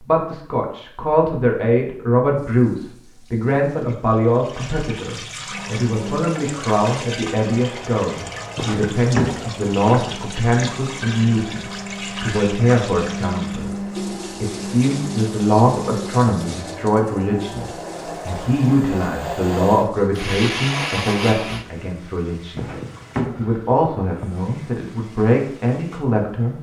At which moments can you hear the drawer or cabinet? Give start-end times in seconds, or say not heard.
8.6-9.4, 22.6-24.4.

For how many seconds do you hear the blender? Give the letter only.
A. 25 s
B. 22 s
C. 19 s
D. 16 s
D.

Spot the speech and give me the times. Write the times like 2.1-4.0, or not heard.
0.0-22.7, 23.4-26.5.